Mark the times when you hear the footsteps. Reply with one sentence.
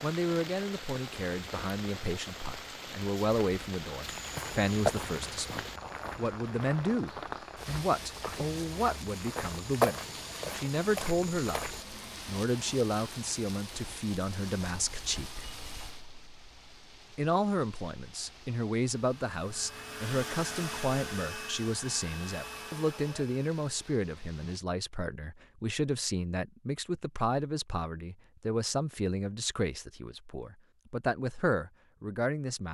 You can hear the footsteps from 4.0 to 11.8 s.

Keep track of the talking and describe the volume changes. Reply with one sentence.
The loudness of the talking stays about the same.